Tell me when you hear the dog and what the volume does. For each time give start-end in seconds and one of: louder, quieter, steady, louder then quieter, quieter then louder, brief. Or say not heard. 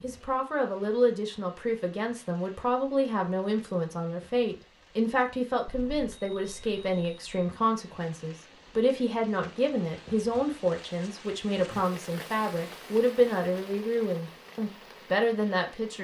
not heard.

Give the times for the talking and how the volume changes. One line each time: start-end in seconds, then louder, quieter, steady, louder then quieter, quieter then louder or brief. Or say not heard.
0.0-15.9 steady.